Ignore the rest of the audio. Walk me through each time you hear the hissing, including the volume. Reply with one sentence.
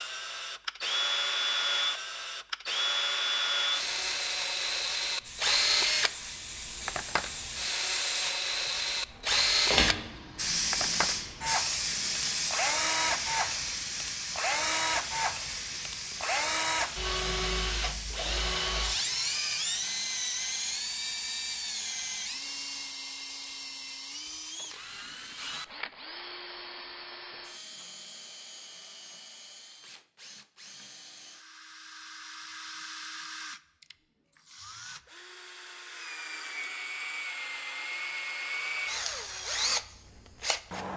The hissing can be heard from 5.2 to 22.9 s, getting louder then quieter.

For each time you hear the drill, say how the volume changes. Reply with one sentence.
The drill can be heard from 0.0 to 40.9 s, getting quieter then louder.